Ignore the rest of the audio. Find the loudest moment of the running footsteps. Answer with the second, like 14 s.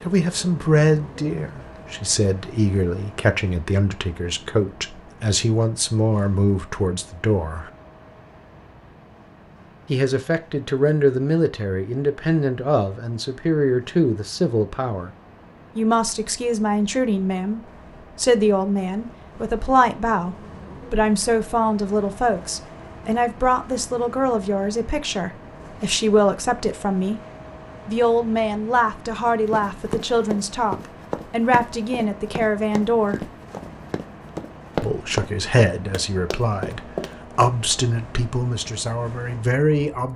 35 s.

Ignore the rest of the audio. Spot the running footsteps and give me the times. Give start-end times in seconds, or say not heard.
29.4-37.1.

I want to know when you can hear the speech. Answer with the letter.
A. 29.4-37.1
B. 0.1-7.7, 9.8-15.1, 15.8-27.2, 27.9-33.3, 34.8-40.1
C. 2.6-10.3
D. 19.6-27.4
B.